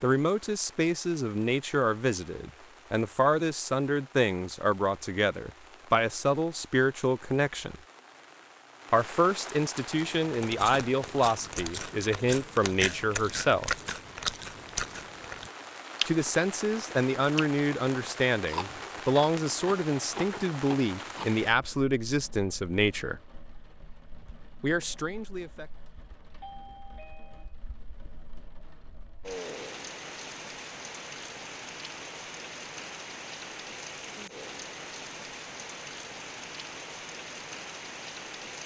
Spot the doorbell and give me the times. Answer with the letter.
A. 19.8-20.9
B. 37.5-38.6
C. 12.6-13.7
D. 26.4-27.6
D.